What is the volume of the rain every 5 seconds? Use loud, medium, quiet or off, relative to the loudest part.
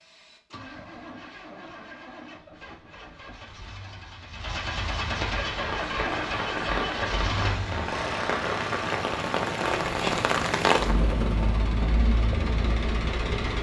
off, loud, loud.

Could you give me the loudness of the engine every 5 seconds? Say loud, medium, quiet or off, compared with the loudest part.
medium, loud, loud.